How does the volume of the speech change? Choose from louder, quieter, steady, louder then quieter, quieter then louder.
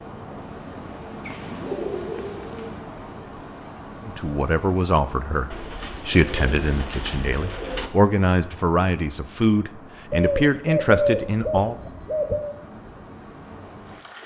steady.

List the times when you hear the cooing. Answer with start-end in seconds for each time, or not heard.
1.2-2.8, 5.5-7.9, 10.1-12.6.